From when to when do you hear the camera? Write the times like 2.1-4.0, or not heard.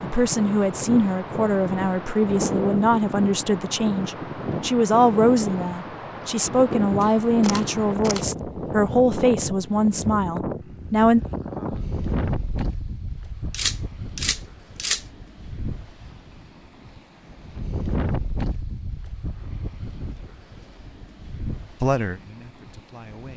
7.0-8.2, 13.5-15.1.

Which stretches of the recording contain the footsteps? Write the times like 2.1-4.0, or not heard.
not heard.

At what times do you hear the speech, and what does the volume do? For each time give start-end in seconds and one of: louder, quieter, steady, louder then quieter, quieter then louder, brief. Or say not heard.
0.0-11.2 steady
21.8-23.3 brief.